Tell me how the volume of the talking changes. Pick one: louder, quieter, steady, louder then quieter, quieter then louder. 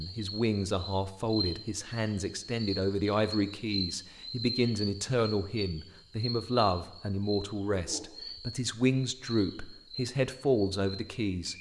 steady.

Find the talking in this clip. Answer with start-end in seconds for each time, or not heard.
0.0-11.5.